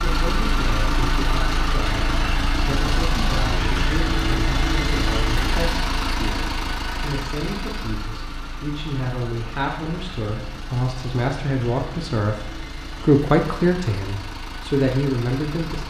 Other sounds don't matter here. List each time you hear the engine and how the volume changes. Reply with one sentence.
The engine can be heard from 0.0 to 15.8 s, getting quieter.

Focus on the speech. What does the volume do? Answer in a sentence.
The loudness of the speech goes up.